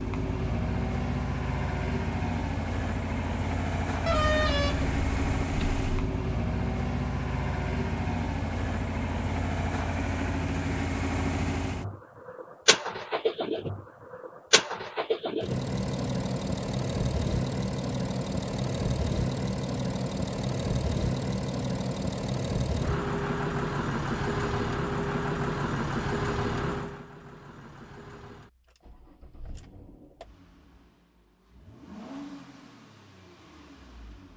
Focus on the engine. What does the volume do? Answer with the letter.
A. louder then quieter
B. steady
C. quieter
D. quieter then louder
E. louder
C.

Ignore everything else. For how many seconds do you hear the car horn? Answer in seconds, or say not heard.
2 s.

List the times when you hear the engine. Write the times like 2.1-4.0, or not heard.
0.0-34.3.